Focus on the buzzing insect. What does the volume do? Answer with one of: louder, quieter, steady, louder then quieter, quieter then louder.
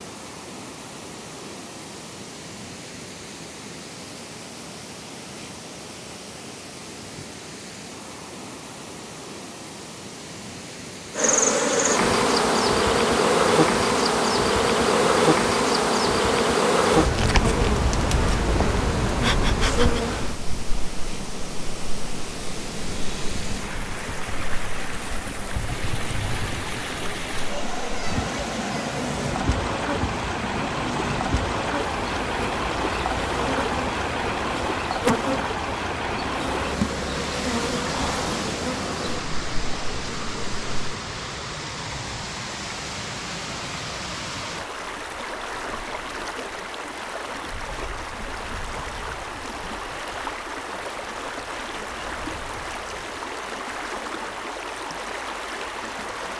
quieter then louder.